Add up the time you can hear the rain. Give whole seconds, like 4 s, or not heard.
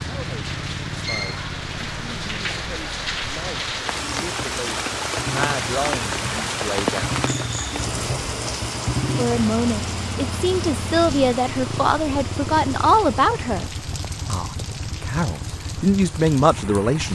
17 s.